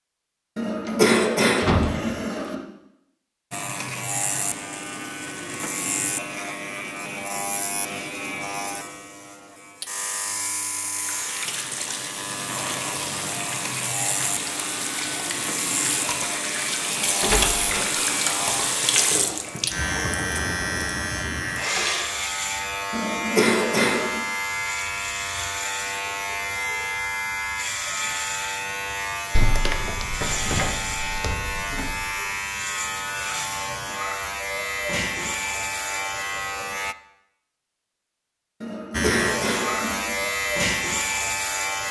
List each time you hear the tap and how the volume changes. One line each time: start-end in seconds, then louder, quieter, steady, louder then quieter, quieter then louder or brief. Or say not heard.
10.9-22.1 louder then quieter.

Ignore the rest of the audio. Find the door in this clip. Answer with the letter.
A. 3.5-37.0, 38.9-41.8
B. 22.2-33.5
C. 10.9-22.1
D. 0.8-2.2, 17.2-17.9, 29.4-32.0
D.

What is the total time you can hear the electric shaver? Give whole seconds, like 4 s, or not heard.
36 s.